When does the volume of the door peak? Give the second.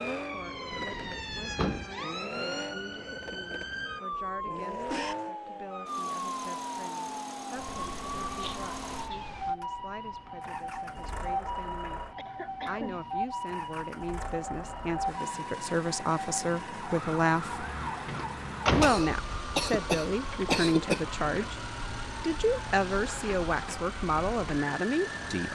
19 s.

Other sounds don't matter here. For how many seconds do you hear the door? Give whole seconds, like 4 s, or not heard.
2 s.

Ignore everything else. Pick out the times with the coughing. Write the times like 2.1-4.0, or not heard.
4.1-5.2, 12.2-13.1, 18.8-21.0.